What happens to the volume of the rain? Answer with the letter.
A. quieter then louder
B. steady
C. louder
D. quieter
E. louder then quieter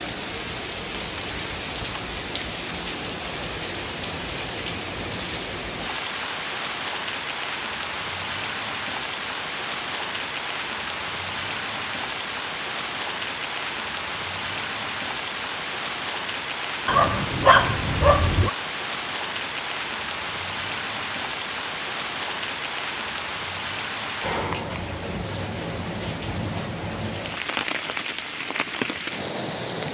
B.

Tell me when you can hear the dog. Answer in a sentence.
The dog can be heard from 16.9 to 18.5 s.